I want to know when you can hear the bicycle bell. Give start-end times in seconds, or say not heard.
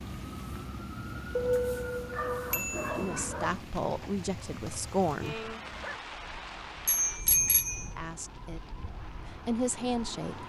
2.5-3.1, 6.8-7.9.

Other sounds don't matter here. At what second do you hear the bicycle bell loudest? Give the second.
7 s.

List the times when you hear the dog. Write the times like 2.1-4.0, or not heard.
1.4-3.6, 5.7-8.1.